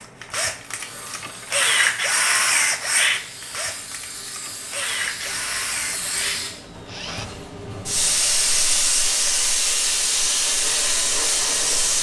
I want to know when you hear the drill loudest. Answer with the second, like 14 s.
2 s.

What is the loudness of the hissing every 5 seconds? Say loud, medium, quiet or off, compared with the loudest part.
quiet, loud, loud.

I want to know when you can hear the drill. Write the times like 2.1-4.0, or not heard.
0.0-7.3.